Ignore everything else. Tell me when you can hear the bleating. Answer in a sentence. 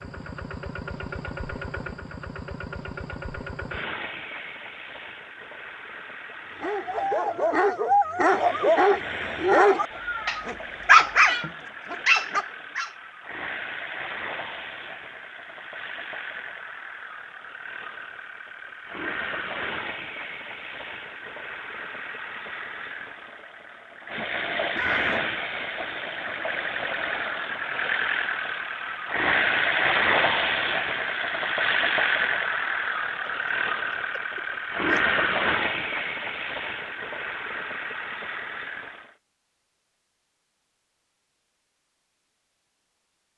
You can't hear the bleating here.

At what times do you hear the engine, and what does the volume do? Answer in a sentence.
The engine can be heard from 0.0 to 39.1 s, getting louder.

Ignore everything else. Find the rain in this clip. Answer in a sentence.
The rain can't be heard in this clip.